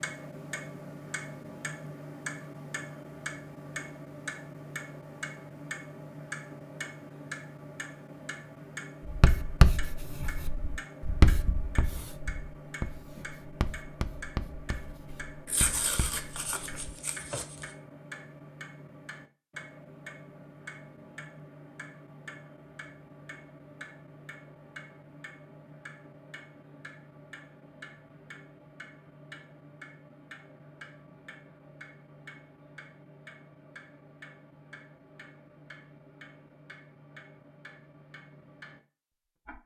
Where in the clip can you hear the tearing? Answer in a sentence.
The tearing can be heard from 15.4 to 17.7 s.